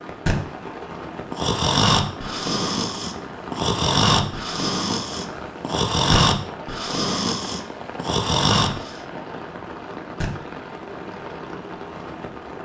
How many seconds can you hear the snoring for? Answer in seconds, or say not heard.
8 s.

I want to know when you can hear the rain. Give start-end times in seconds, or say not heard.
0.0-12.6.